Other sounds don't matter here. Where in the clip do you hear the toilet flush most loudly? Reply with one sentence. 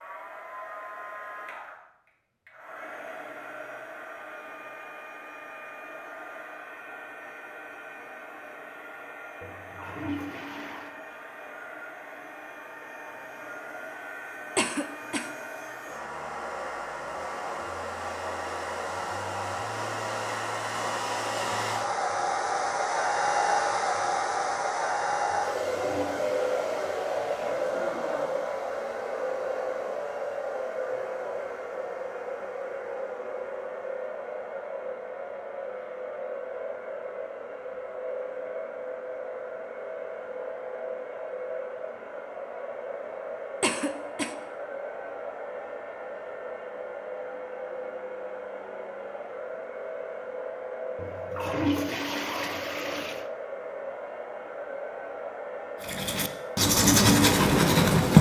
The volume of the toilet flush peaks at 52 seconds.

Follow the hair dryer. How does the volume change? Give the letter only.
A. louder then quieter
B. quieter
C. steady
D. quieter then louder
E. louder
A.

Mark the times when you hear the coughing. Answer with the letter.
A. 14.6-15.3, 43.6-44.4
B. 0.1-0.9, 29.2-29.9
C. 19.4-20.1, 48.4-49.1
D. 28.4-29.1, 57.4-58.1
A.